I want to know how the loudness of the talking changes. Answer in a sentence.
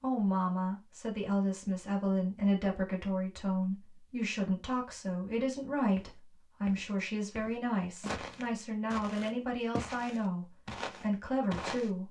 The volume of the talking stays about the same.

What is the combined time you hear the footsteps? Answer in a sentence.
The footsteps can be heard for 6 seconds in total.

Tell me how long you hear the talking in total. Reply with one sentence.
You can hear the talking for 12 seconds altogether.